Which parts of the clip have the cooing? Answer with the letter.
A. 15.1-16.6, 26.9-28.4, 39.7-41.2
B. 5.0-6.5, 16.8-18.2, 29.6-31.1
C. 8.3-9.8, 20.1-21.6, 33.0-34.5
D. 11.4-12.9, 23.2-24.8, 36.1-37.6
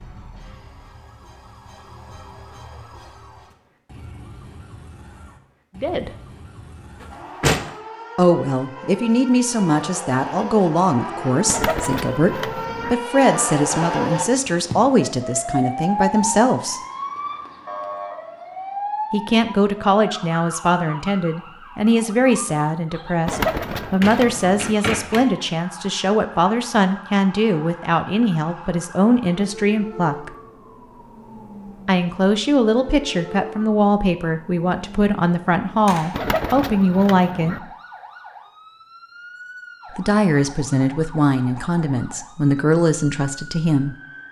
D.